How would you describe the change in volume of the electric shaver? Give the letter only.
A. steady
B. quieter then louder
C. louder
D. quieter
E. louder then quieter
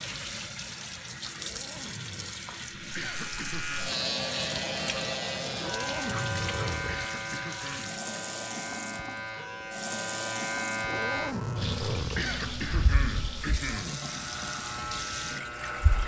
D.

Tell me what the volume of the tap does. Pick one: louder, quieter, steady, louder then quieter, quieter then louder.
steady.